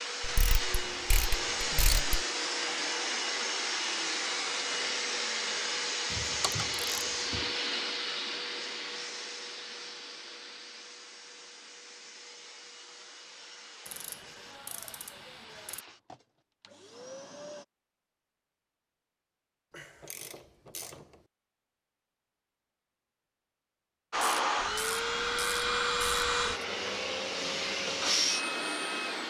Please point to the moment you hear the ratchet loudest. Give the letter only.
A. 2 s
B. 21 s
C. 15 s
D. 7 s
A.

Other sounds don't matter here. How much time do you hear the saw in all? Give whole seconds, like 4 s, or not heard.
5 s.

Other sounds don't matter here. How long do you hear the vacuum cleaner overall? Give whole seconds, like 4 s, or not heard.
23 s.